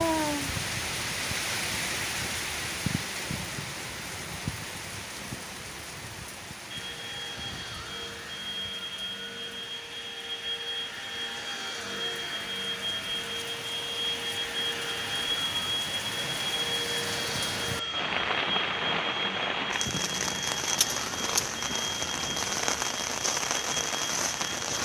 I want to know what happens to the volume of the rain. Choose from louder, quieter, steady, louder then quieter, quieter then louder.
quieter then louder.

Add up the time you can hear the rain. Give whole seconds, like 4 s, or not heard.
25 s.